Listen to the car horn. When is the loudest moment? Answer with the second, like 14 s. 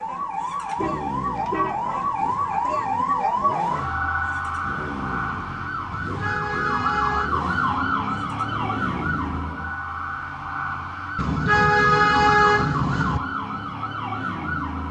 12 s.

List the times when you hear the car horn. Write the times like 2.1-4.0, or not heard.
0.7-1.8, 5.9-7.3, 11.2-13.2.